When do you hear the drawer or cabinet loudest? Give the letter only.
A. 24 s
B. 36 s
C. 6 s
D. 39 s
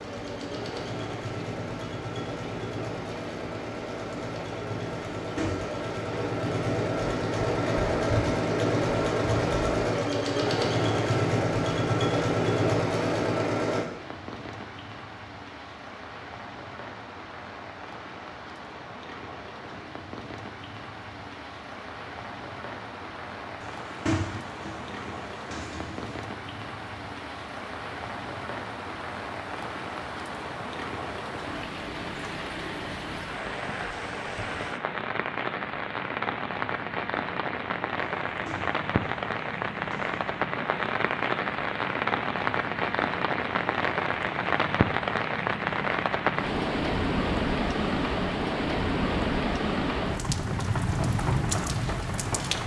A.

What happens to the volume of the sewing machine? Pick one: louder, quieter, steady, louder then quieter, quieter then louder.
louder.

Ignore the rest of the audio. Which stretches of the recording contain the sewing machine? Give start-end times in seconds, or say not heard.
0.0-13.8.